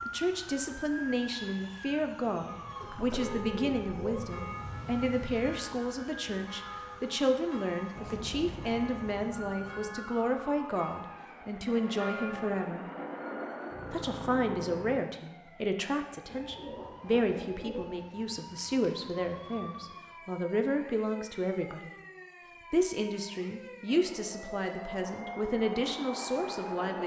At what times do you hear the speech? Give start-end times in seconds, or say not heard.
0.1-12.8, 13.9-21.9, 22.7-27.0.